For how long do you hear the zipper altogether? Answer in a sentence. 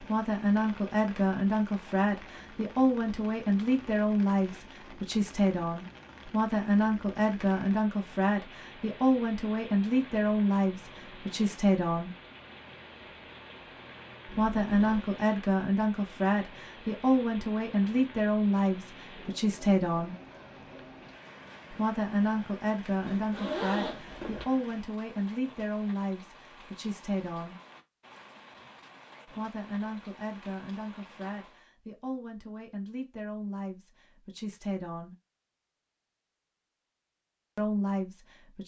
The zipper can be heard for 2 seconds in total.